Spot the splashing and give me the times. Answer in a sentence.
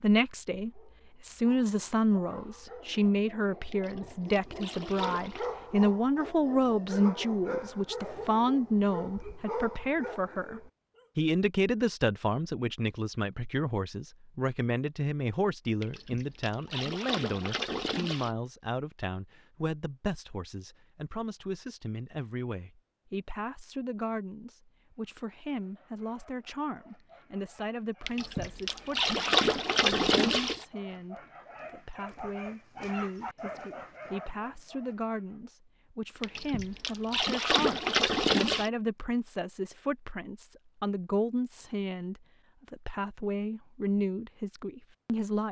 You can hear the splashing from 3.7 to 5.5 s, from 15.8 to 18.3 s, from 28.1 to 30.6 s and from 36.2 to 38.7 s.